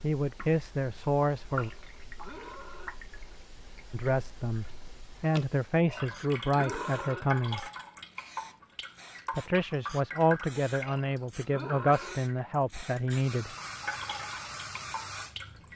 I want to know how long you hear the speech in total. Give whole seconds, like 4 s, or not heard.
10 s.